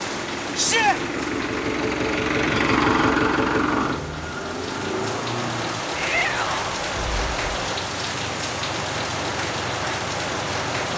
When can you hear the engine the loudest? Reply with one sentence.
The loudest moment of the engine is at 3 seconds.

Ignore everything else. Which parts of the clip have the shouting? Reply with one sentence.
You can hear the shouting from 0.6 to 1.0 s and from 6.0 to 6.7 s.